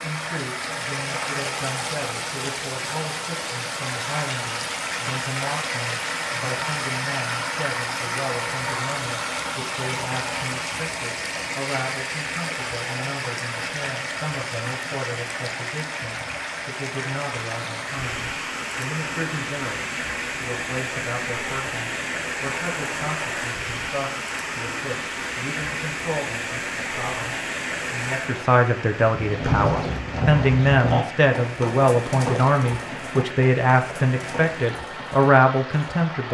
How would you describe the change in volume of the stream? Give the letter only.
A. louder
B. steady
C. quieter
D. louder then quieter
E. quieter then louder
C.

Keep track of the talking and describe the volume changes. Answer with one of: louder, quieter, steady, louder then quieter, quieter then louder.
louder.